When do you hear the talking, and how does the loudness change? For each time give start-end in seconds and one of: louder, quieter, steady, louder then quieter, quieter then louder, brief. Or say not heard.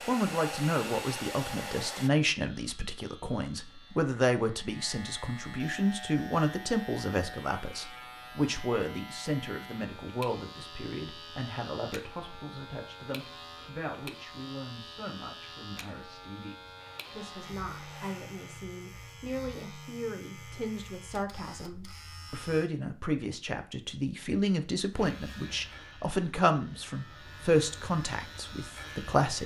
0.1-29.4 quieter then louder.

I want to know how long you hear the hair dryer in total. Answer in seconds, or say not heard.
4 s.